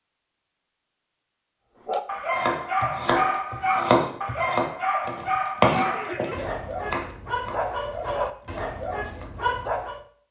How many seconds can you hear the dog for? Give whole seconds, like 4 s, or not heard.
8 s.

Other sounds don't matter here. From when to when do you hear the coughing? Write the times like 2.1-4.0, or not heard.
5.8-6.5.